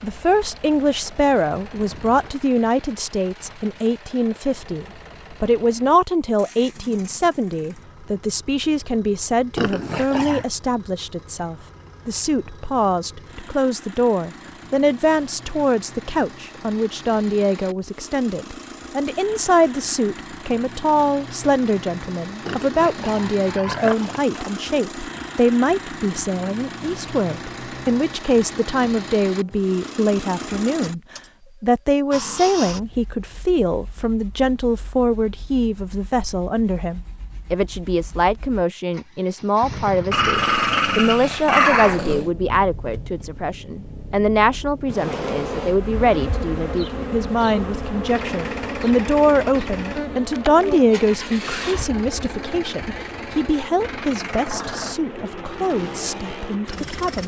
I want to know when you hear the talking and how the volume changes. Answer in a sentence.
The talking can be heard from 0.0 to 57.2 s, at a steady volume.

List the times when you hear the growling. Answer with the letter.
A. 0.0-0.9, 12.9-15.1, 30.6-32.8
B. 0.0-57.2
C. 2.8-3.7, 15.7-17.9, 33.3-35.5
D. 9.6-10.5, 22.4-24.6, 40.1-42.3
D.